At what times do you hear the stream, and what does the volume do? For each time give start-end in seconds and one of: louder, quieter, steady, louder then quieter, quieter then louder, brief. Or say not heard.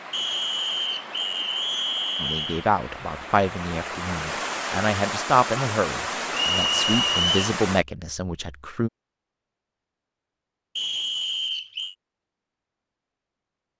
0.0-7.8 louder.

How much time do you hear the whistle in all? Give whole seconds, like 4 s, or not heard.
5 s.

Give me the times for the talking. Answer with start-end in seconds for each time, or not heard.
2.2-8.9.